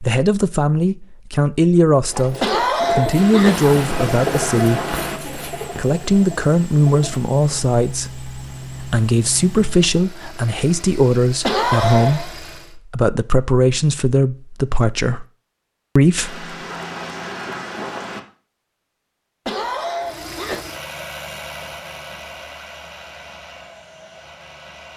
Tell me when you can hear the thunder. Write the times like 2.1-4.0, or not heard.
3.1-5.2, 16.2-18.2.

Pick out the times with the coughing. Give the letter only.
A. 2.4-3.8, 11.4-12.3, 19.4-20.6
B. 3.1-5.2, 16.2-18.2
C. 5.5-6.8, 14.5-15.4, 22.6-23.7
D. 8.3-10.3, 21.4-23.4
A.